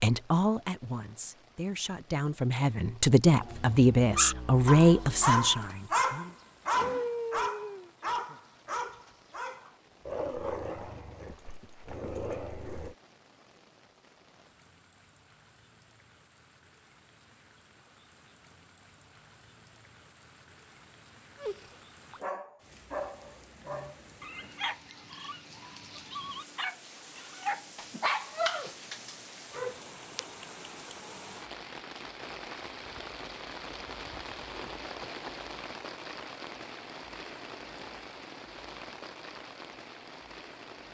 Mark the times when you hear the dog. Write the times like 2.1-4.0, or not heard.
4.1-12.9, 21.4-30.2.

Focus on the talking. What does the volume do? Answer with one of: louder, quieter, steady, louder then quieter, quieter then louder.
louder.